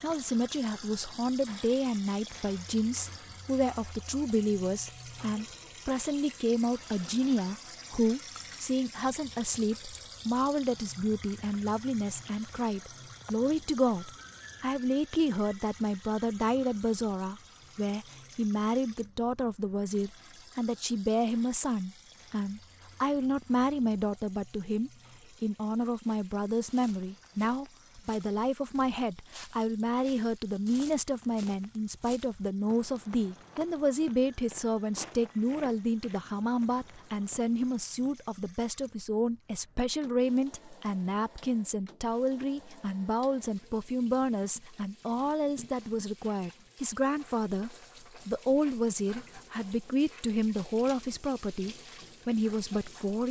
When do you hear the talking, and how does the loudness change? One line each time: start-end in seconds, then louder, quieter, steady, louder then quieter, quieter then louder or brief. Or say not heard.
0.0-53.2 steady.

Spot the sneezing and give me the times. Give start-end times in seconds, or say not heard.
not heard.